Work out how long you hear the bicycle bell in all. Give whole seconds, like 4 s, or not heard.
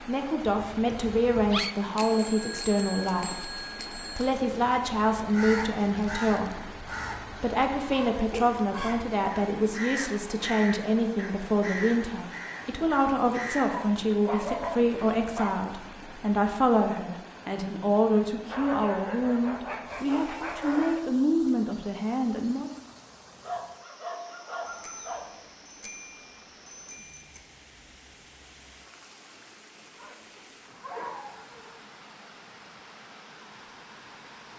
5 s.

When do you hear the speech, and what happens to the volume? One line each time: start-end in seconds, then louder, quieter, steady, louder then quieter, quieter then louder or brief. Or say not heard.
0.1-22.7 steady.